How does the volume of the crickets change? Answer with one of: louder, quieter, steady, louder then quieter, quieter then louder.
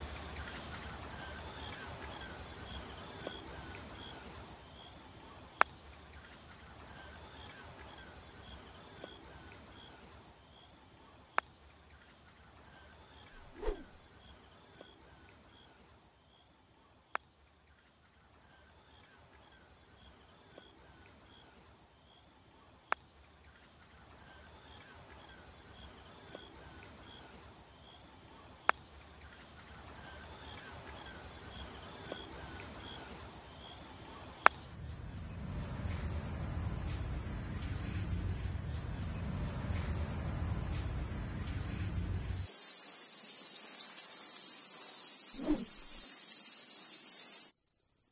quieter then louder.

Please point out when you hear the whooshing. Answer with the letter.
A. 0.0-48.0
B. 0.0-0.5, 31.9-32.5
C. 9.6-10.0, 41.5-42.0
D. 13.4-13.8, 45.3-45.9
D.